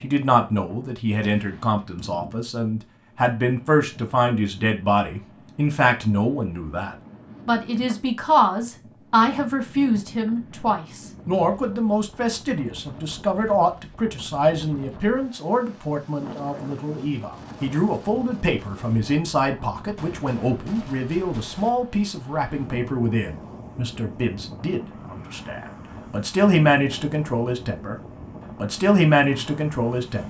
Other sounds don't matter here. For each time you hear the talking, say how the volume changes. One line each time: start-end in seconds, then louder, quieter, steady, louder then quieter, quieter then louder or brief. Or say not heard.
0.0-27.9 steady
28.6-30.2 brief.